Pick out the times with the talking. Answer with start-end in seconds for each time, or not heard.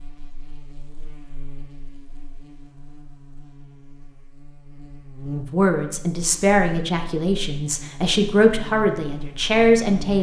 5.5-10.1.